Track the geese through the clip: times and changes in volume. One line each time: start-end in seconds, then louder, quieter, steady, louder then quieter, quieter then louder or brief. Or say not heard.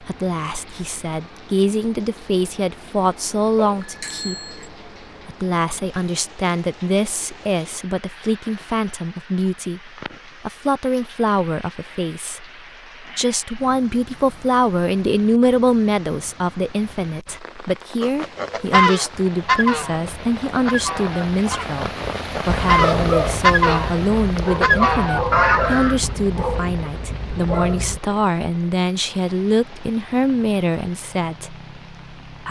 18.0-26.0 quieter then louder.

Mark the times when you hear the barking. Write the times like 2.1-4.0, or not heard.
22.4-28.0.